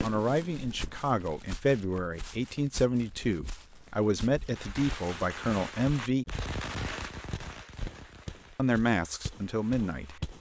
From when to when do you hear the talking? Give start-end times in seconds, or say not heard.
0.0-6.2, 8.6-10.2.